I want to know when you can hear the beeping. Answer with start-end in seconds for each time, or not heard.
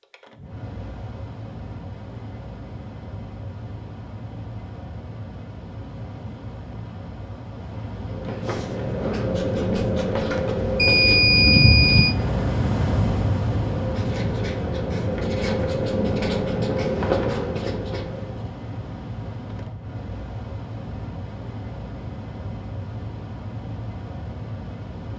10.8-12.2.